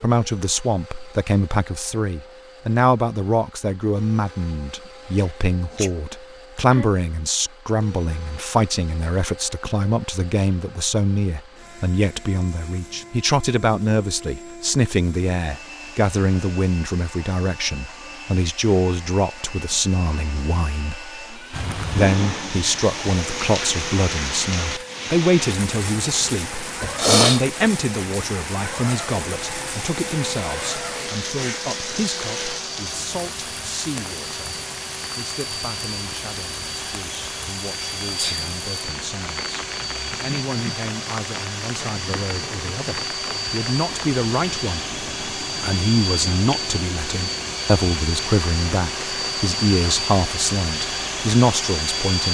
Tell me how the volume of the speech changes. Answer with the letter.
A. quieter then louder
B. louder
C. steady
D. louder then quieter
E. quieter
A.